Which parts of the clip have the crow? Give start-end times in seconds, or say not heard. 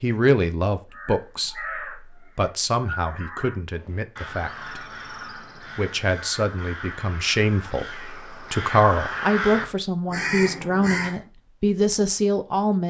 0.9-11.2.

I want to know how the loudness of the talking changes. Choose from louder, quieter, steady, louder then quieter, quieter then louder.
quieter then louder.